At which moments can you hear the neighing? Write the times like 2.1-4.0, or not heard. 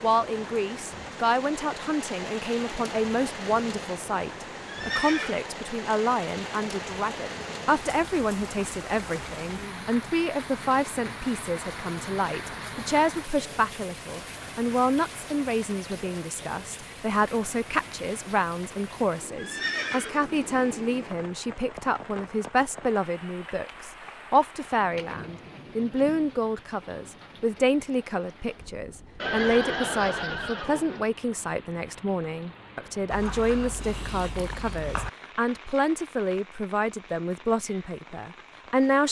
4.7-5.4, 19.4-20.5, 29.2-31.1.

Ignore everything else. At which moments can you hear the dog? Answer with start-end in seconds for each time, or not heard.
33.1-35.1.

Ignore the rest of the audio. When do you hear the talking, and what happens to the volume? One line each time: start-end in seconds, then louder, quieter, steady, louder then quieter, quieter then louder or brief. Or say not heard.
0.0-39.0 steady.